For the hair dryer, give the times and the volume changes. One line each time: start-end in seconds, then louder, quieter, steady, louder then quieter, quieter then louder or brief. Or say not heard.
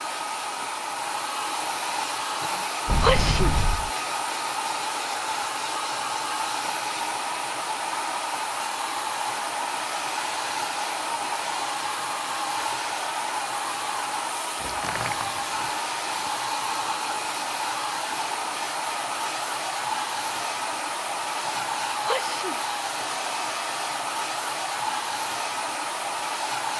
0.0-26.7 steady.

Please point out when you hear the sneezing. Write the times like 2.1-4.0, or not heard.
2.3-3.5, 21.4-22.6.